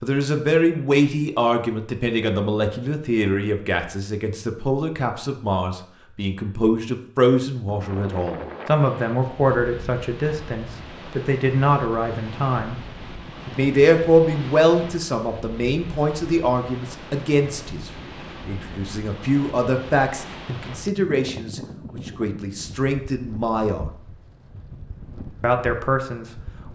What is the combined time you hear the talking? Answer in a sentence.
You can hear the talking for 24 seconds altogether.